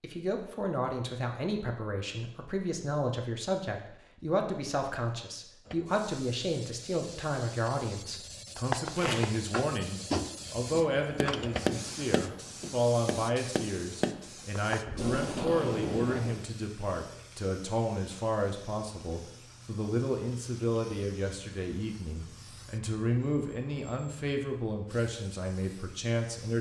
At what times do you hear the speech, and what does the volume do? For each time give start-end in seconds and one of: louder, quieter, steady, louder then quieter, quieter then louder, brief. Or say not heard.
0.0-26.5 steady.